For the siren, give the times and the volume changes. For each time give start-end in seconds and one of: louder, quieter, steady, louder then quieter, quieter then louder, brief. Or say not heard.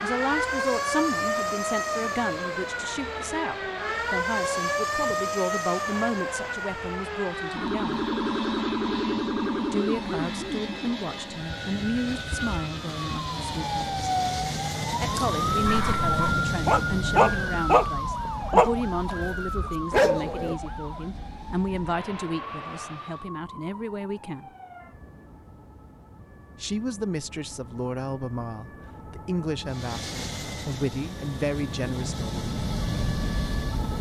0.0-33.9 quieter.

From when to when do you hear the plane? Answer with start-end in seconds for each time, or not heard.
0.0-23.3, 29.6-33.9.